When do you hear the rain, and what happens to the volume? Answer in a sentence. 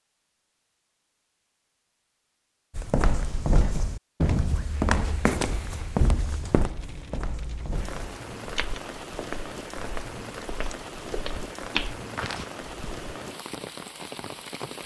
The rain can be heard from 4.7 to 14.8 s, getting louder.